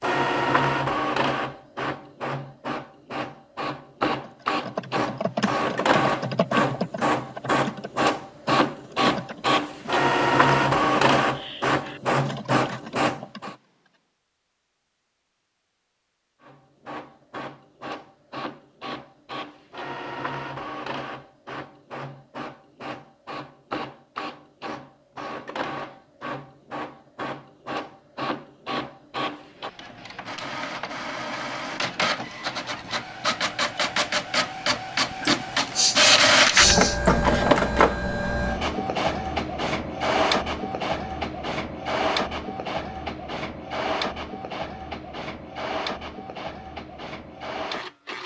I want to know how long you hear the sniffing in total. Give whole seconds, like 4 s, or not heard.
2 s.